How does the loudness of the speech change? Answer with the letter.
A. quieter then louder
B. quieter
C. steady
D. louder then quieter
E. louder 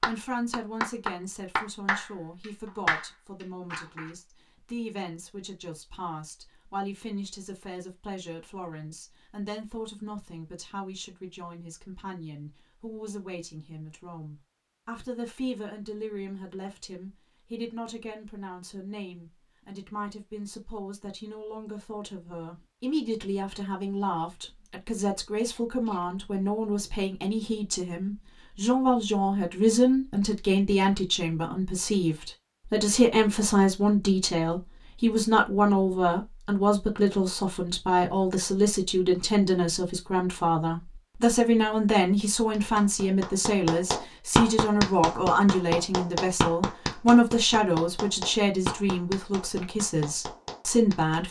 E.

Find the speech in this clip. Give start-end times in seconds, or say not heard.
0.0-51.2.